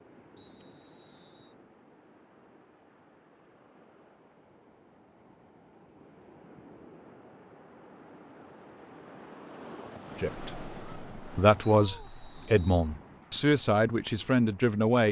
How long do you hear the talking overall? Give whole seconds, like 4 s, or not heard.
5 s.